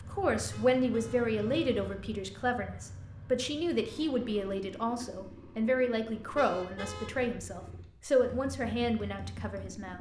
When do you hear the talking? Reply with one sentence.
The talking can be heard from 0.1 to 9.9 s.